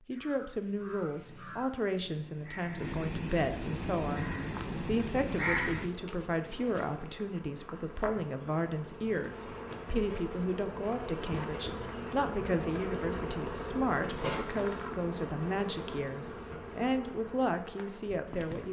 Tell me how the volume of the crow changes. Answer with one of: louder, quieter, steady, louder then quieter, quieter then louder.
louder.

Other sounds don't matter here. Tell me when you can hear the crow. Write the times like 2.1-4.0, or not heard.
0.1-5.9.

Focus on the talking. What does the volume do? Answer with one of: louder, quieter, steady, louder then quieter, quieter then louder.
steady.